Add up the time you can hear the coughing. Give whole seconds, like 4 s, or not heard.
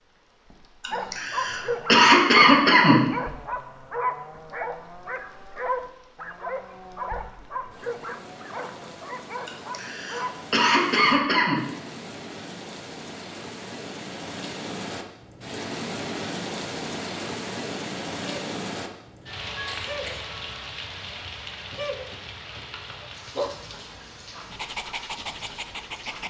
5 s.